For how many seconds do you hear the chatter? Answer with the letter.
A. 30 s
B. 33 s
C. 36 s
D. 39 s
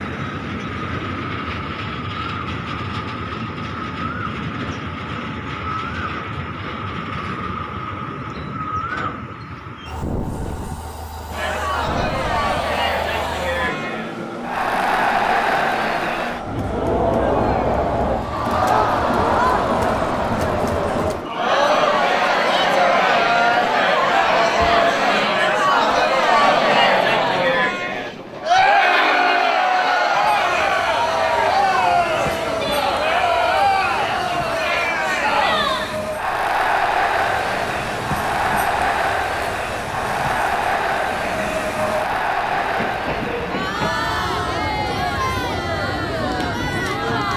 C.